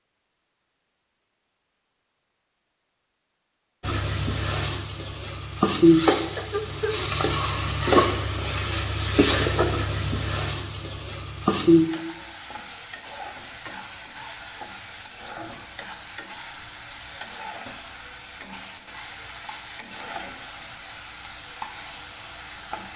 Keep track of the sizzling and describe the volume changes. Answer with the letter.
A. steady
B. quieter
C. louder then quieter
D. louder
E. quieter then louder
B.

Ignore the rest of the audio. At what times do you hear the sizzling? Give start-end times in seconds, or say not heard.
3.8-22.9.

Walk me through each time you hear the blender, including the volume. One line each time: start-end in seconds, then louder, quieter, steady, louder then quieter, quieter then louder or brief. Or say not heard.
not heard.